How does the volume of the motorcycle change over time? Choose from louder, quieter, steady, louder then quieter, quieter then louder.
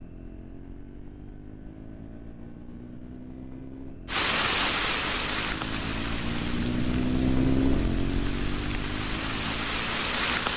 louder then quieter.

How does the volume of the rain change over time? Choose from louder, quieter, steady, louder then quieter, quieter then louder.
quieter then louder.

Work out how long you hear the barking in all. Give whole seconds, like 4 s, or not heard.
not heard.